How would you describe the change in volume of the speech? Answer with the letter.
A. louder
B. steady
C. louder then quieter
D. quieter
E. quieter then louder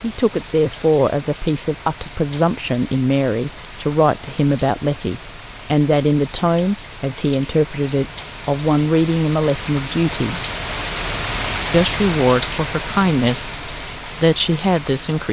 B.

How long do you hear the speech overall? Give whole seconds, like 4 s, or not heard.
14 s.